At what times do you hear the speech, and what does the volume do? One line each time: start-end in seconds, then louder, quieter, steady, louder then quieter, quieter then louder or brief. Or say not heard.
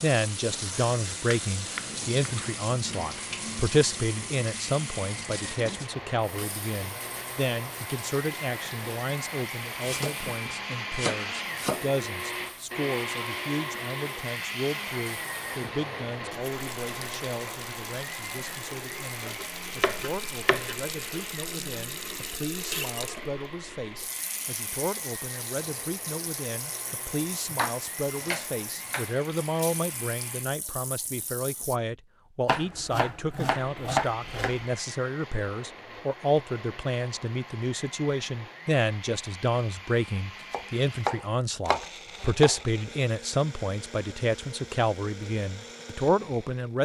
0.0-46.7 quieter then louder.